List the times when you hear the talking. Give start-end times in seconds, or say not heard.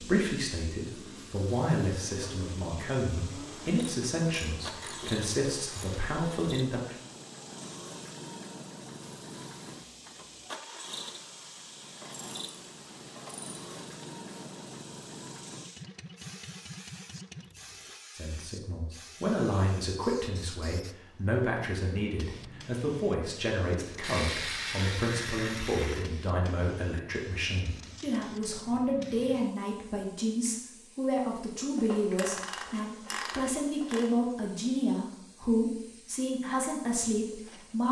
0.0-7.0, 18.1-37.8.